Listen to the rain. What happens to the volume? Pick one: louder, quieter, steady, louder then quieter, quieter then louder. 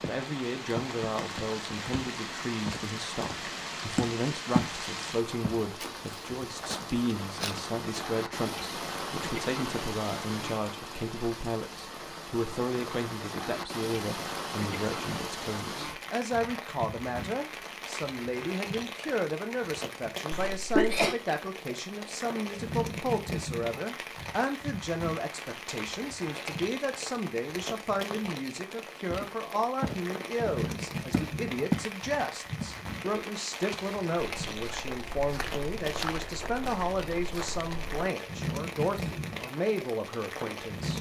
steady.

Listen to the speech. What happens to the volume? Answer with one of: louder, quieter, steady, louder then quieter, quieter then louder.
steady.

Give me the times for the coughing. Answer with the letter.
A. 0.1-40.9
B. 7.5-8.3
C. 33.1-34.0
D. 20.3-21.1
D.